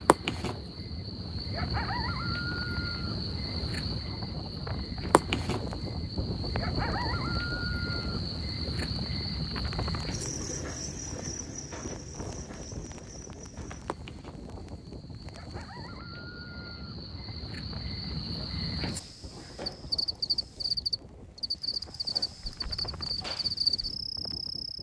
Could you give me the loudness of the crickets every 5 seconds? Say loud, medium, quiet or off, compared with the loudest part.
loud, loud, medium, medium, loud.